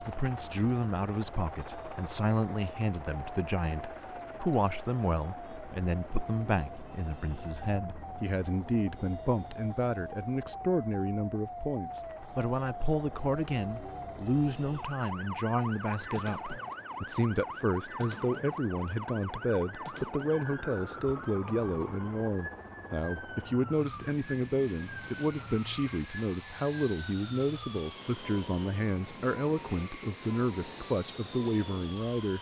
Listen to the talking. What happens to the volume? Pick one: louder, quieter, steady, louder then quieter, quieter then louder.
steady.